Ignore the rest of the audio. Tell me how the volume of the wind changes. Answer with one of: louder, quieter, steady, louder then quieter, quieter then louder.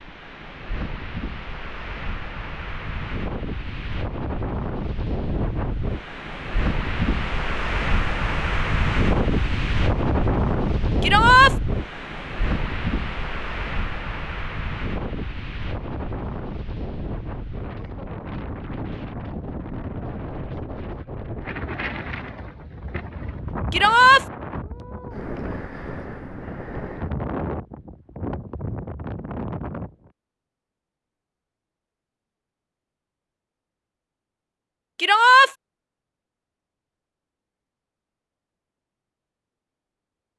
louder then quieter.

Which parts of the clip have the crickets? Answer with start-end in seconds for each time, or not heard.
not heard.